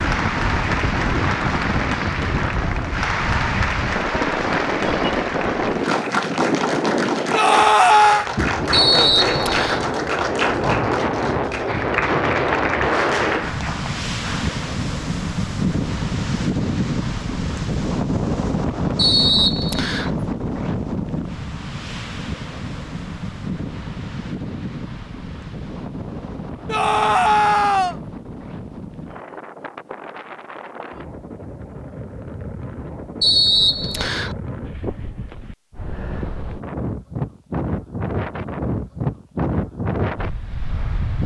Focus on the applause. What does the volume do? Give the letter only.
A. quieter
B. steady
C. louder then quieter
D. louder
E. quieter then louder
B.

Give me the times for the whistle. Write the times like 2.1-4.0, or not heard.
8.7-9.8, 18.9-20.1, 33.2-34.4.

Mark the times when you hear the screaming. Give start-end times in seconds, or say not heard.
7.3-8.2, 26.6-27.9.